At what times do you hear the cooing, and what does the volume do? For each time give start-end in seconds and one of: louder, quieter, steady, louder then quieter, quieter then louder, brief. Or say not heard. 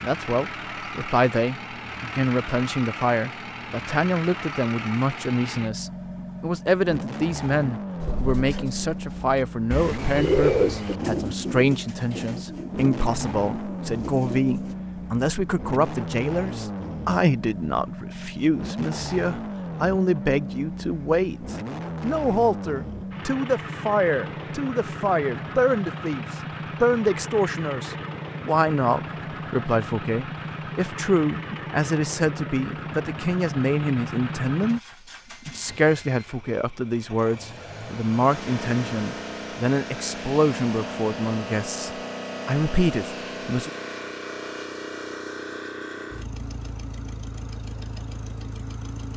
8.0-14.8 louder then quieter.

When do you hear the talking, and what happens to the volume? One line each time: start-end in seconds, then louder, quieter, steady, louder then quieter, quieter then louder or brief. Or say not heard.
0.0-34.8 steady
35.5-43.7 steady.